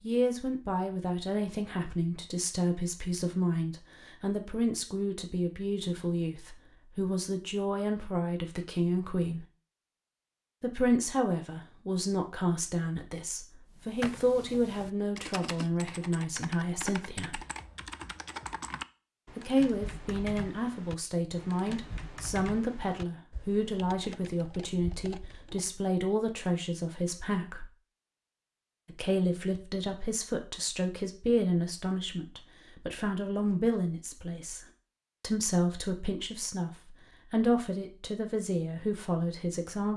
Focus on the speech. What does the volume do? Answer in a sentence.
The volume of the speech stays about the same.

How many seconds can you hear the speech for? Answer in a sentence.
You can hear the speech for 36 seconds altogether.